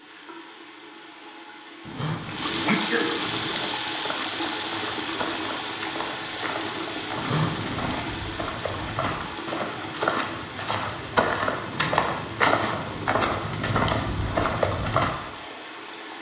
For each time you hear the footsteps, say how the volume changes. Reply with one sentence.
The footsteps can be heard from 3.5 to 15.2 s, getting louder.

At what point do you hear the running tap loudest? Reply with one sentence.
The loudest moment of the running tap is at 3 seconds.